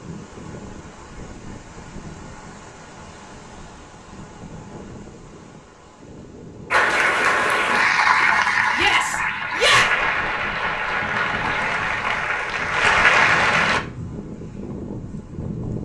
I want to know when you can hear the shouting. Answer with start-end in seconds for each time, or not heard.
8.7-9.9.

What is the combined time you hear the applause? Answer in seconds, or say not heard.
7 s.